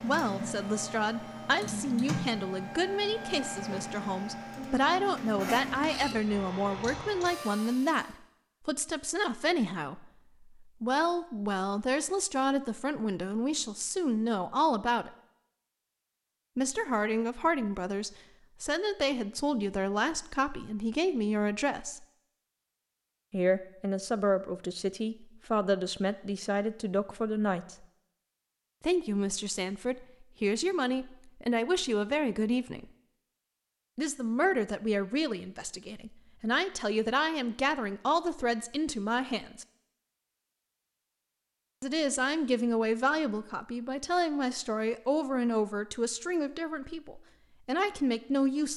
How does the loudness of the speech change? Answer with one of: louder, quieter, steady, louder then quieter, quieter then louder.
steady.